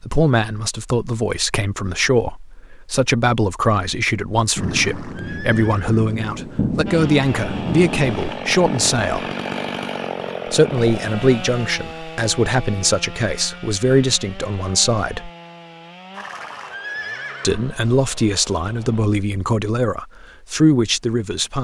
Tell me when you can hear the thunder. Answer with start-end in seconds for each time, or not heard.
4.5-9.1.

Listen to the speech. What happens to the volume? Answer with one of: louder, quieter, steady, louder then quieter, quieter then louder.
steady.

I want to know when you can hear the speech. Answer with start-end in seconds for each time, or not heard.
0.0-9.3, 10.4-15.3, 17.4-21.5.